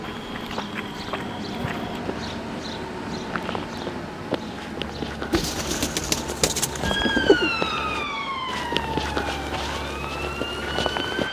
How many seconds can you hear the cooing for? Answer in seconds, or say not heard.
2 s.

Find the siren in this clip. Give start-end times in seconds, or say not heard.
6.8-11.2.